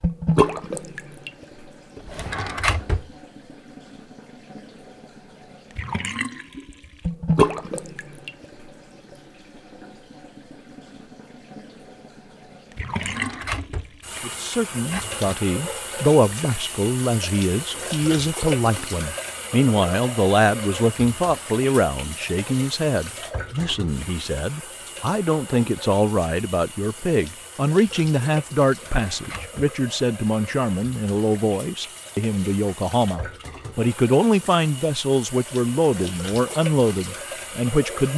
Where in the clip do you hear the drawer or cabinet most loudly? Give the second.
3 s.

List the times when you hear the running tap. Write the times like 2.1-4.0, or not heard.
0.0-38.1.